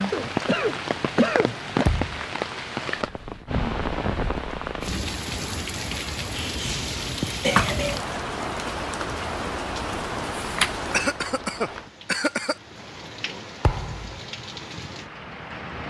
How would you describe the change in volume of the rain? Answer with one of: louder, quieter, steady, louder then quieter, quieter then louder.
quieter.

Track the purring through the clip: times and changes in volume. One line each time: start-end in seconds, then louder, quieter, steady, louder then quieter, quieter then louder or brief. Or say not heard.
not heard.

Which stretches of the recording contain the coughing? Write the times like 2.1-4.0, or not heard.
0.1-1.9, 6.3-8.0, 10.9-12.6.